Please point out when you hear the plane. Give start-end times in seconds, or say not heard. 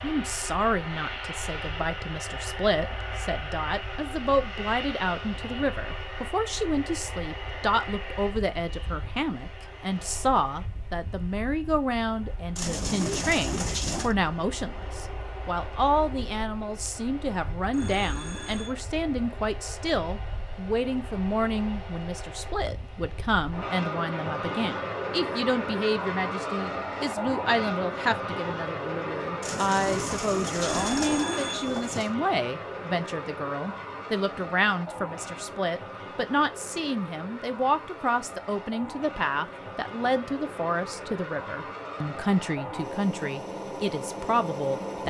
0.0-45.0.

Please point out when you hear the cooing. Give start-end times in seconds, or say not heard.
12.6-14.2, 29.4-32.1.